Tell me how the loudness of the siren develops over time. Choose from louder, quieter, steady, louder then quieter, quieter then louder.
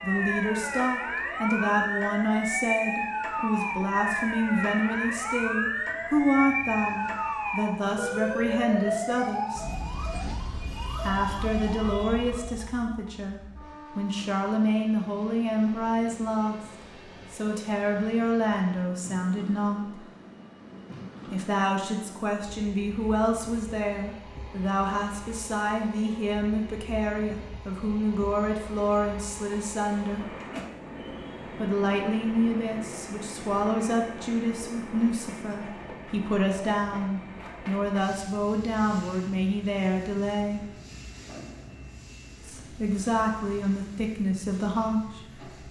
quieter.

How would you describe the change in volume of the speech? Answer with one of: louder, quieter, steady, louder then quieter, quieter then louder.
steady.